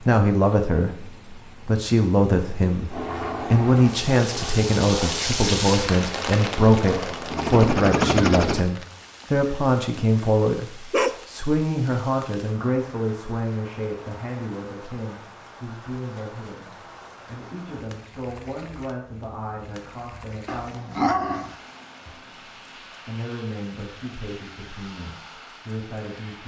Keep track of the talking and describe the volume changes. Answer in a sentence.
The loudness of the talking goes down.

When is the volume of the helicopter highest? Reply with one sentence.
The volume of the helicopter peaks at 8 seconds.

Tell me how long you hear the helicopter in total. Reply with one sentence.
You can hear the helicopter for 6 seconds altogether.